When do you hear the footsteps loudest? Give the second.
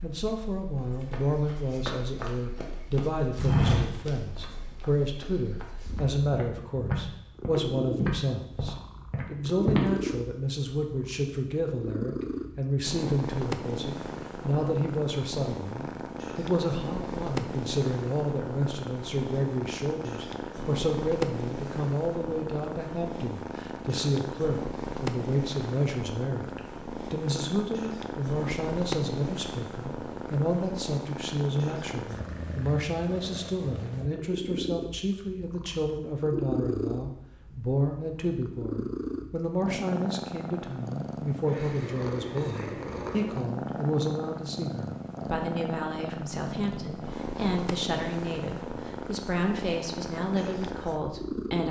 4 s.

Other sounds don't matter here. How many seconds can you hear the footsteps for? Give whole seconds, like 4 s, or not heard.
9 s.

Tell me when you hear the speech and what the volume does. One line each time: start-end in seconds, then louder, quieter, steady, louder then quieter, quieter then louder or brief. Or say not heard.
0.0-51.6 steady.